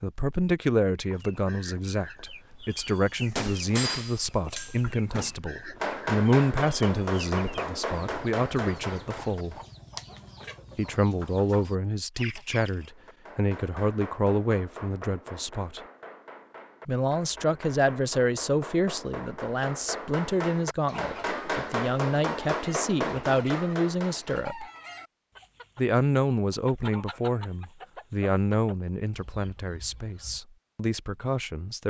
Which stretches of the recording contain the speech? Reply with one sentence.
You can hear the speech from 0.0 to 9.6 s, from 10.8 to 15.8 s, from 16.9 to 24.6 s and from 25.8 to 31.8 s.